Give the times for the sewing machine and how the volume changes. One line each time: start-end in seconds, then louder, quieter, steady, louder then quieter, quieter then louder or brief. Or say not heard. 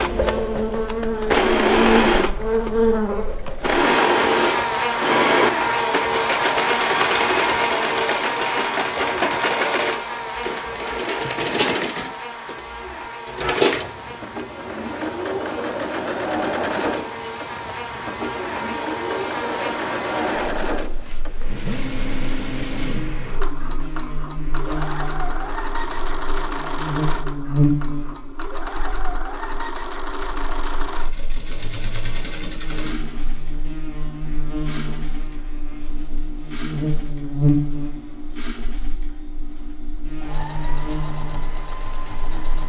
0.0-42.6 quieter.